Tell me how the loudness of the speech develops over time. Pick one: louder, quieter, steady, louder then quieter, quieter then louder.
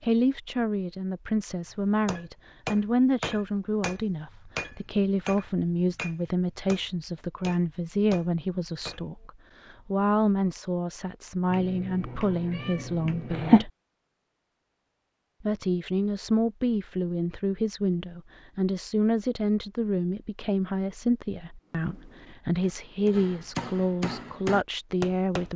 steady.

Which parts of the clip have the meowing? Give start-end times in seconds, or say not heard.
11.5-13.7.